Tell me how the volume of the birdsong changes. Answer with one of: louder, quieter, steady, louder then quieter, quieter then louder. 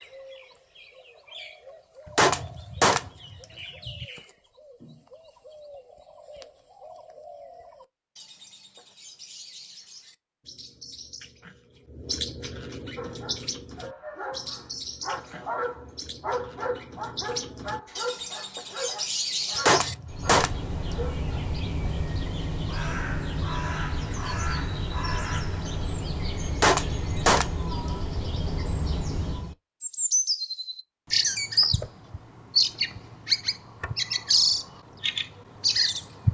louder.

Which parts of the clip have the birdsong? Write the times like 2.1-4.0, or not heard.
0.0-36.2.